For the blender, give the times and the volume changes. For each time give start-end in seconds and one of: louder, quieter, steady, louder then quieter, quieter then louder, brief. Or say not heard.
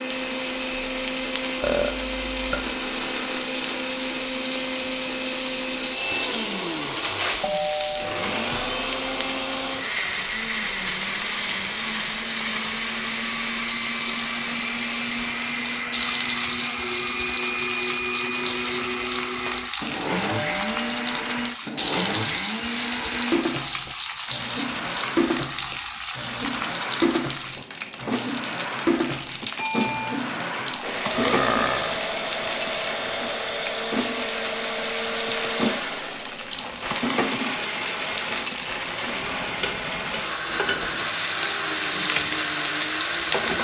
0.0-43.6 steady.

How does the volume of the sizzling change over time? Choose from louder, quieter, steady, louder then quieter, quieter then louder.
steady.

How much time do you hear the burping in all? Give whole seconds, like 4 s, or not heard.
2 s.